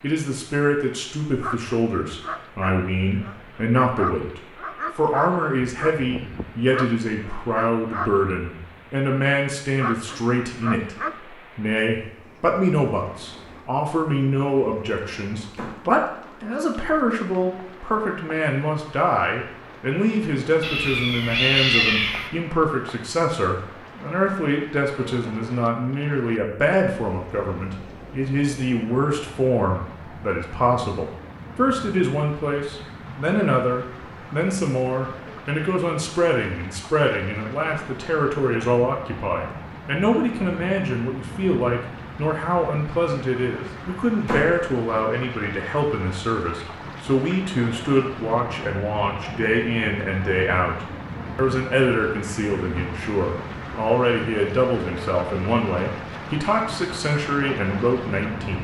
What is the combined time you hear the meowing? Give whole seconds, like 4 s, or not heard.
2 s.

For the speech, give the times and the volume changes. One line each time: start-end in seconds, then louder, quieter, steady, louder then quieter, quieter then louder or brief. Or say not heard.
0.0-58.5 steady.